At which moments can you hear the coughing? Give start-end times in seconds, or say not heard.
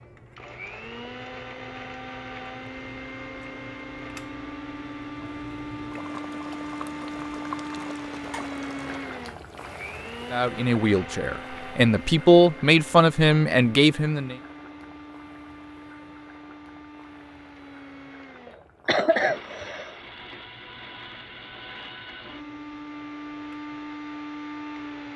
18.9-19.9.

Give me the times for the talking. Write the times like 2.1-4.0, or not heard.
10.3-14.3.